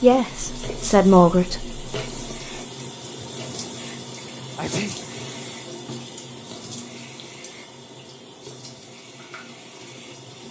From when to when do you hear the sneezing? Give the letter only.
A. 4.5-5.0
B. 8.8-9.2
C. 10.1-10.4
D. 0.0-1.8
A.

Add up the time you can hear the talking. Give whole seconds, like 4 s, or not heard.
2 s.